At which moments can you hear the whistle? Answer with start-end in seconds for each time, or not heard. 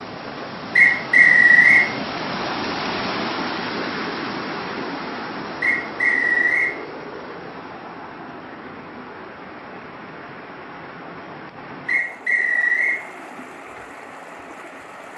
0.8-1.9, 5.6-6.8, 11.8-13.0.